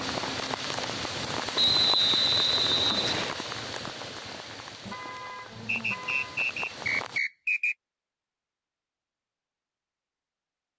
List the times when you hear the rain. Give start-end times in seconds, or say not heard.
0.0-7.2.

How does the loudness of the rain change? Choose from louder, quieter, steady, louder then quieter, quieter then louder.
quieter.